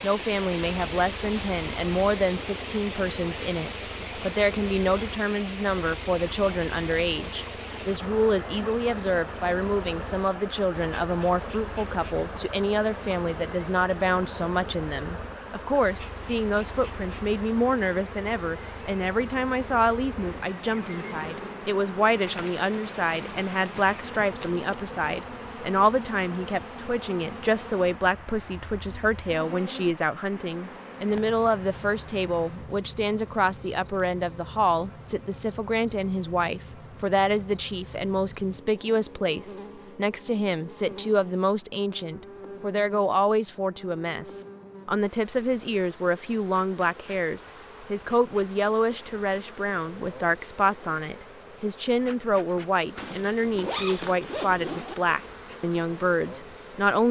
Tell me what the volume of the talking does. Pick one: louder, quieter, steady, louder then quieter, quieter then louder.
steady.